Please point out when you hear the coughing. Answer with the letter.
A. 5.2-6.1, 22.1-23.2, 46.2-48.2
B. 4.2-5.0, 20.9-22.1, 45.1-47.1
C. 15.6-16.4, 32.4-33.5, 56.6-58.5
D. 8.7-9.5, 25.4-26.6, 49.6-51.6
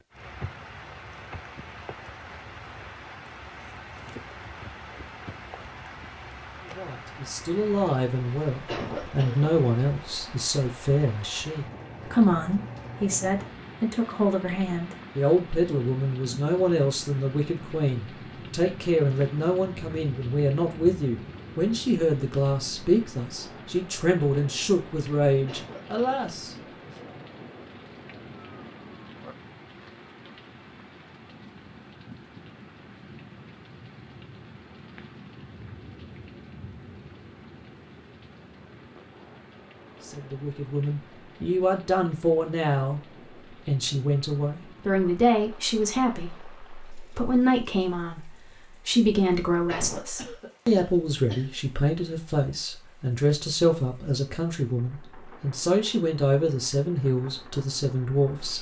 D.